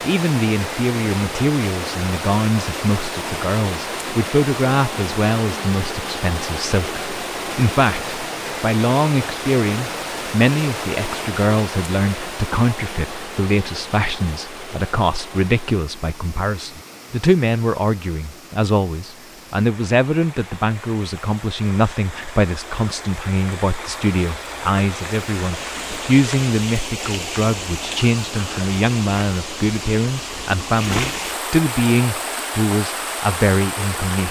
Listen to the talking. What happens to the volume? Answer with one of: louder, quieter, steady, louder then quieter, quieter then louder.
steady.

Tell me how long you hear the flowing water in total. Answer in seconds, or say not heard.
34 s.